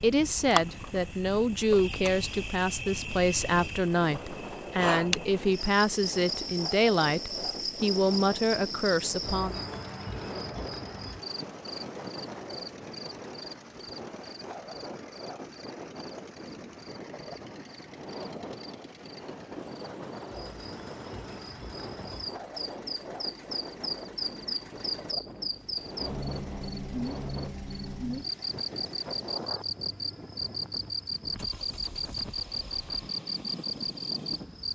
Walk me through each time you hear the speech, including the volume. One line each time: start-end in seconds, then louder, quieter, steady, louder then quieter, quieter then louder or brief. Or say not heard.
0.0-9.6 steady.